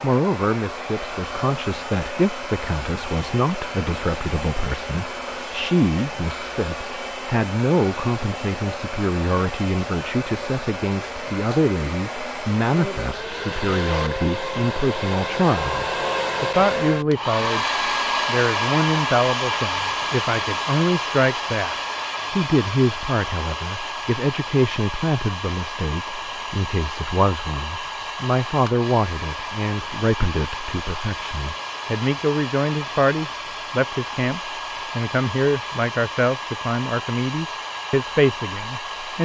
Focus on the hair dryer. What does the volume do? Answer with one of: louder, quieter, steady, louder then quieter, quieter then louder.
louder then quieter.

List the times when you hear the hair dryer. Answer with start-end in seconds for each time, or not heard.
0.0-39.2.